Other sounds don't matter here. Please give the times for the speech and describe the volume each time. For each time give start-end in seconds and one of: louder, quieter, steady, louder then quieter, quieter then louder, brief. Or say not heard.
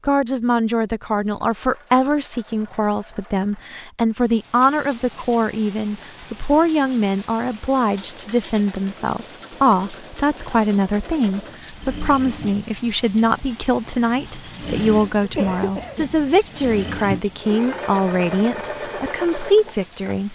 0.1-20.3 steady.